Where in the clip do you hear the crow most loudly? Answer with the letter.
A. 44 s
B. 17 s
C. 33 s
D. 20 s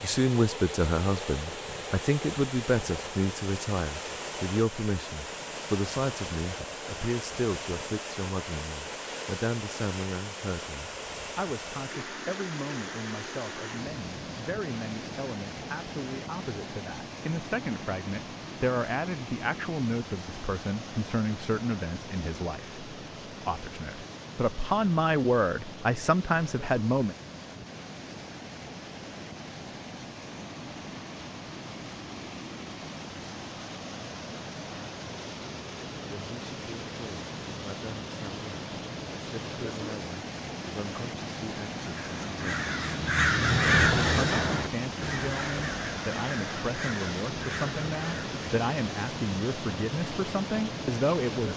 A.